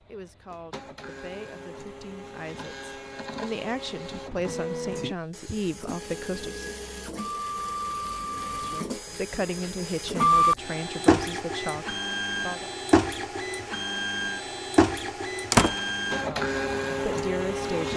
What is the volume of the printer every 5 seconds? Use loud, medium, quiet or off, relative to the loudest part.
quiet, medium, loud, loud.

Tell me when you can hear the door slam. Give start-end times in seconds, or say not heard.
15.5-15.9.